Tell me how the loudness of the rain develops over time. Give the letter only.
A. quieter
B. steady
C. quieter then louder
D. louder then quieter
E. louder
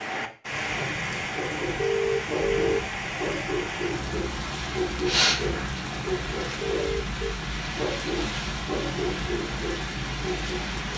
B.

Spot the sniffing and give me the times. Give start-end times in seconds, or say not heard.
5.0-5.8.